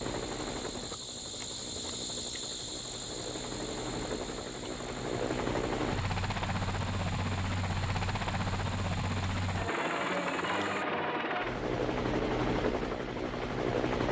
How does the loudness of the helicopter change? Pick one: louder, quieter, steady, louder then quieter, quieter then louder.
louder.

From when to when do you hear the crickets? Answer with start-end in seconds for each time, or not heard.
0.0-10.8.